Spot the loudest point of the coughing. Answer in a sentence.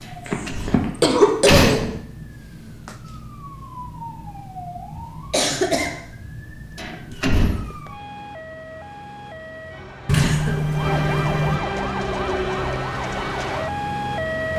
The loudest moment of the coughing is at 1 second.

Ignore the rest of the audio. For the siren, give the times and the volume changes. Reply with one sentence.
You can hear the siren from 0.0 to 14.5 s, getting louder.